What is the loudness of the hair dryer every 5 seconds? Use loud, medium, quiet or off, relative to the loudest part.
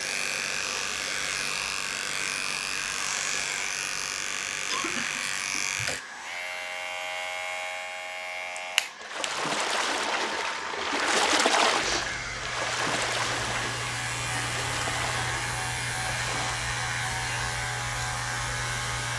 loud, medium, loud, loud.